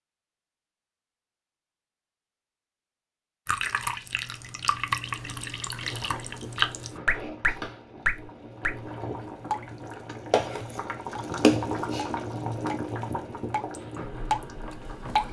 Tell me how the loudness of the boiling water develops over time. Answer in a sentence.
The volume of the boiling water goes up, then down.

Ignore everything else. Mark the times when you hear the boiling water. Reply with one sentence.
You can hear the boiling water from 5.8 to 15.2 s.